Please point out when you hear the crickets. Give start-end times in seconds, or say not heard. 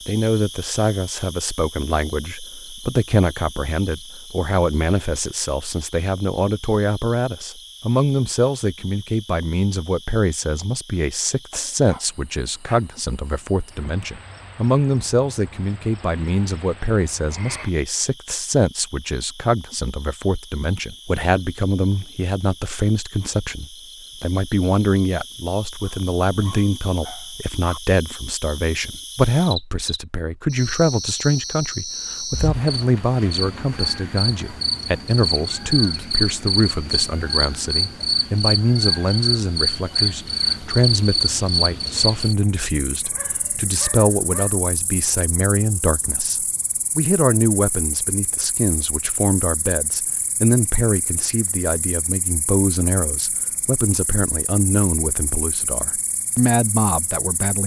0.0-57.6.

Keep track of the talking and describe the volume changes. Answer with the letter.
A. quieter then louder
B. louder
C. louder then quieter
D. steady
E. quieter
D.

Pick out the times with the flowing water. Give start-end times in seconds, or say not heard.
not heard.